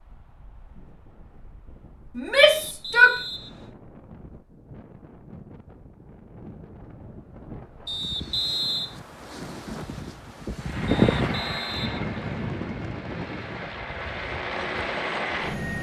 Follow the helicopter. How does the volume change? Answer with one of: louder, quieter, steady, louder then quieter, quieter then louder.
quieter then louder.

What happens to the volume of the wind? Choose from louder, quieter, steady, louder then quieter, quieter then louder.
louder then quieter.